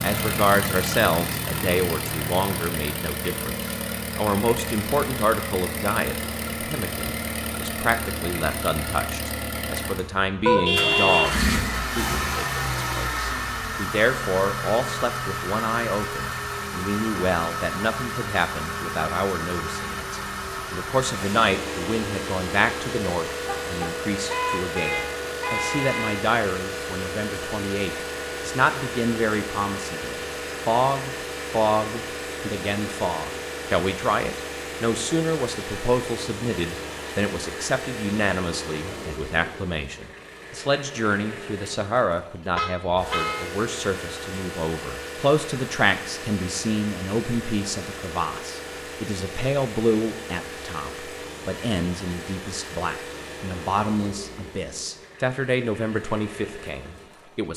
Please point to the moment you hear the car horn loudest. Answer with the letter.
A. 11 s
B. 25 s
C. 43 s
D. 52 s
A.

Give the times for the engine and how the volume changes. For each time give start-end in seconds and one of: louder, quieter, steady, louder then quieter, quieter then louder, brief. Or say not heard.
0.0-57.5 quieter.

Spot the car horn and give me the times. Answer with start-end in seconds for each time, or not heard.
10.4-11.5, 23.4-26.2, 42.5-43.5.